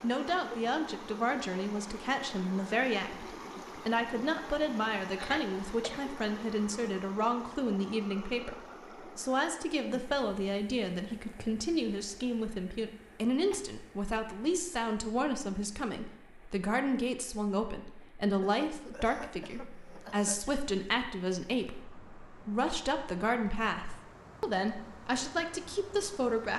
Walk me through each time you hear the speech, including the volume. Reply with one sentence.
You can hear the speech from 0.0 to 26.5 s, at a steady volume.